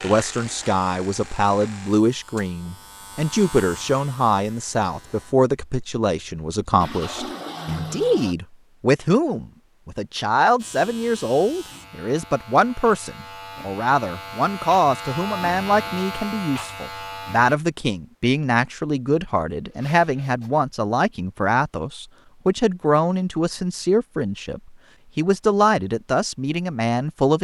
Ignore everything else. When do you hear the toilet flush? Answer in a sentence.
The toilet flush can be heard from 6.8 to 8.3 s.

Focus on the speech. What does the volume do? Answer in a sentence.
The loudness of the speech stays about the same.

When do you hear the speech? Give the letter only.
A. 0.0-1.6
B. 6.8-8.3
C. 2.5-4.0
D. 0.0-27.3
D.